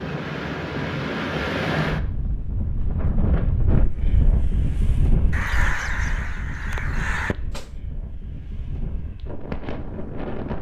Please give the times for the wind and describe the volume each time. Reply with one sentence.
The wind can be heard from 0.0 to 10.5 s, getting quieter.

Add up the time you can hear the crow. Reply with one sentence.
You can hear the crow for 2 seconds altogether.